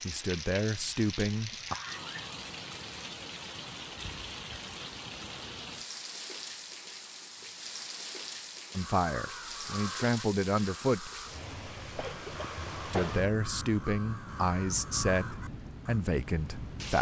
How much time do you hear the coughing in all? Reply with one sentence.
The coughing can be heard for 2 seconds in total.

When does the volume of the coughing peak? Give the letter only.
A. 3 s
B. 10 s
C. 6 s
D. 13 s
D.